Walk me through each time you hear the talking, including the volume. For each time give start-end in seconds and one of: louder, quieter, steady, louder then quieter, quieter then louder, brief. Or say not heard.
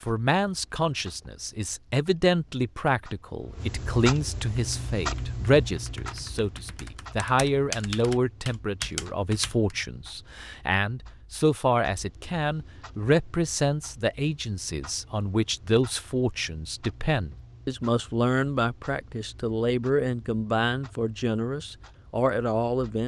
0.0-23.0 steady.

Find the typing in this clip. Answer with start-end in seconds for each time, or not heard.
4.5-9.8.